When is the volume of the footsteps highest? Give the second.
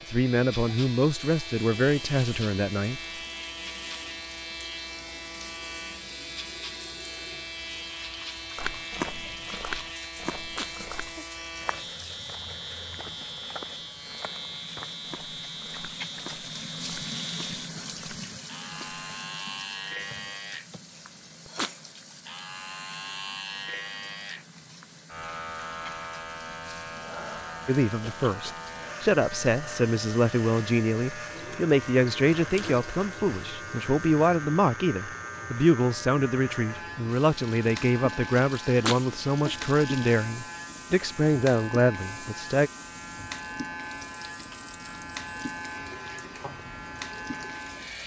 9 s.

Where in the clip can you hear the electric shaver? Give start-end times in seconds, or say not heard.
0.0-48.0.